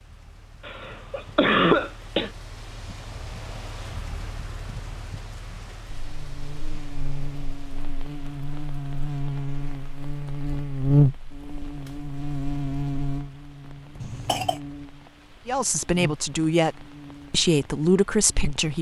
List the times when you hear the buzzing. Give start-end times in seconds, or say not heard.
5.8-18.7.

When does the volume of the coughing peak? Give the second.
2 s.